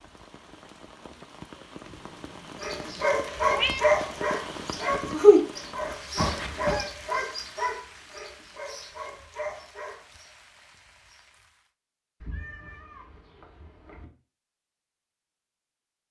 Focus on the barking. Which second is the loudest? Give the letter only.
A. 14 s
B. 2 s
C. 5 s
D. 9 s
C.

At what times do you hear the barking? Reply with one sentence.
The barking can be heard from 2.6 to 10.0 s.